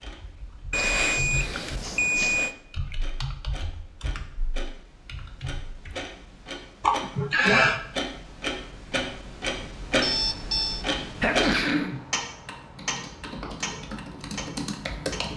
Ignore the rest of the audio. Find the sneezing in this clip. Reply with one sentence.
The sneezing can be heard from 0.8 to 2.4 s, from 6.8 to 7.8 s and from 11.2 to 12.0 s.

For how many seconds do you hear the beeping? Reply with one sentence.
You can hear the beeping for 3 seconds altogether.